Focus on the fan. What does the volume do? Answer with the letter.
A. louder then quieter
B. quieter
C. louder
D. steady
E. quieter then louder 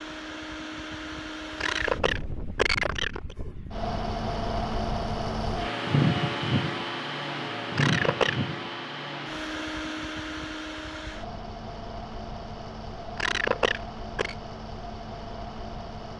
A.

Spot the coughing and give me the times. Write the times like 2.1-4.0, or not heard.
1.6-3.4, 7.8-8.4, 13.2-14.3.